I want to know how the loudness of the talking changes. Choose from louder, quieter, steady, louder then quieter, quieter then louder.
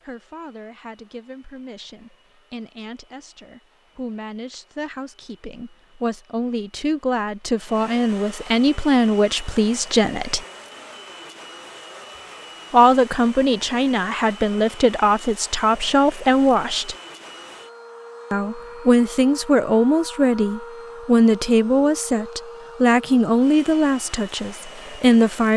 louder.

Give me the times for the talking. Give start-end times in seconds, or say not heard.
0.0-10.4, 12.7-16.9, 18.3-25.5.